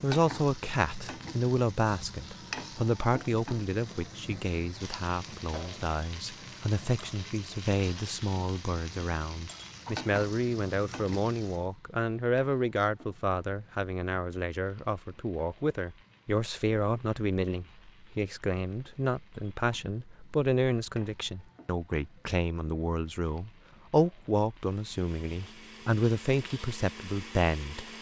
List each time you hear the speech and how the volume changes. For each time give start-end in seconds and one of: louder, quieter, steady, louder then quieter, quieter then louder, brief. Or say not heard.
0.0-27.9 steady.